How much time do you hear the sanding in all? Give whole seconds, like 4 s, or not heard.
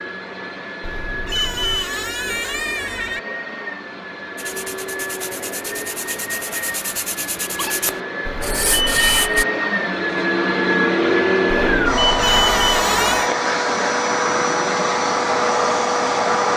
5 s.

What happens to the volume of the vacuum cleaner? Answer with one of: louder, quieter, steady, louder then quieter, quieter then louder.
louder.